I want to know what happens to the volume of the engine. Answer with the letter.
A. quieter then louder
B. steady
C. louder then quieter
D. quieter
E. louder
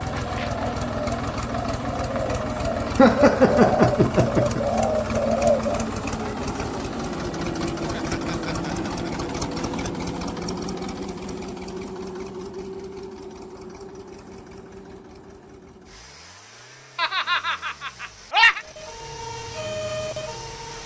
D.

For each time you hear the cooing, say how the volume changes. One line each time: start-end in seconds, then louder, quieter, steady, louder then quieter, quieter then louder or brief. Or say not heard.
0.0-5.9 louder.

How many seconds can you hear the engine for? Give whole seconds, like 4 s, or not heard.
21 s.